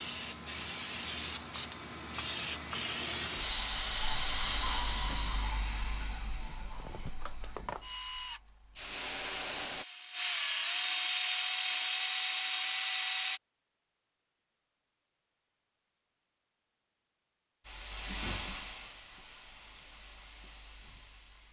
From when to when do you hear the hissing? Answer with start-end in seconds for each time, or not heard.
0.0-9.8, 17.6-21.4.